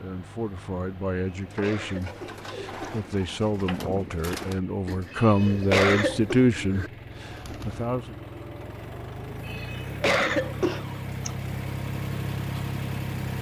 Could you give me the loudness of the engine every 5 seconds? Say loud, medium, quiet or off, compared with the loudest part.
quiet, medium, loud.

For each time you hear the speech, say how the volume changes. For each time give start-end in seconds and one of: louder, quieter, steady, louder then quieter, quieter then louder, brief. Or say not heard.
0.0-8.2 louder.